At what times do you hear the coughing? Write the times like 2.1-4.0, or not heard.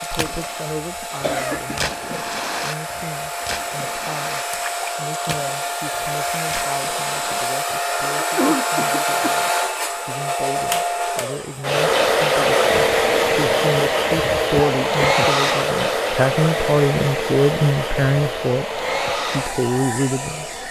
1.2-1.9, 8.2-9.3, 14.5-15.2.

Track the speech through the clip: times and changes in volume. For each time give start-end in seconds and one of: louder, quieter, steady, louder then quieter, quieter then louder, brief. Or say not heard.
0.0-20.5 louder.